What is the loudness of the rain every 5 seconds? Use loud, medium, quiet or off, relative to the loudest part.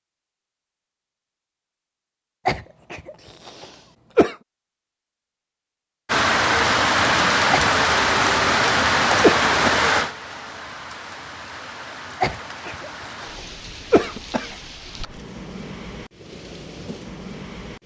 off, loud, quiet, quiet.